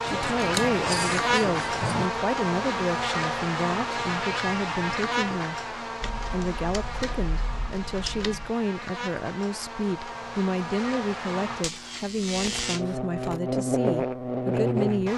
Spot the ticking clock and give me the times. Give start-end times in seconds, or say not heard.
not heard.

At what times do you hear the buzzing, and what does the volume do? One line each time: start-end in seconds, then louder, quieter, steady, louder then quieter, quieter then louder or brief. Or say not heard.
0.0-15.1 quieter then louder.